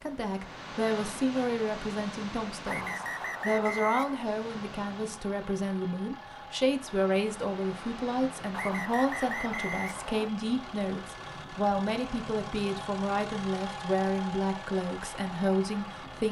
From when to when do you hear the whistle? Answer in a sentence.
The whistle can be heard from 2.6 to 4.3 s and from 8.5 to 10.3 s.